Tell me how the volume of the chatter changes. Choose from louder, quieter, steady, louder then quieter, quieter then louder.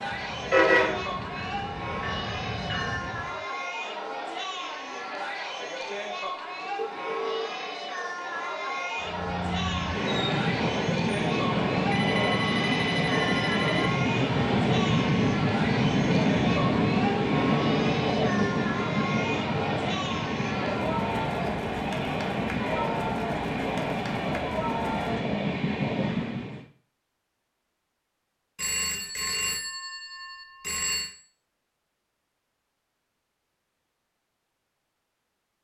steady.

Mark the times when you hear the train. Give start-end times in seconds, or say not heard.
0.0-3.4, 9.0-26.6.